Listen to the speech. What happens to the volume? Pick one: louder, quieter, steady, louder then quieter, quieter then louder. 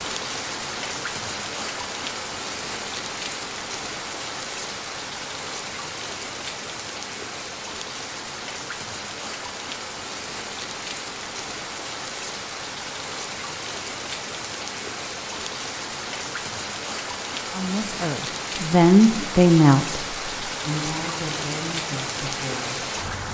louder then quieter.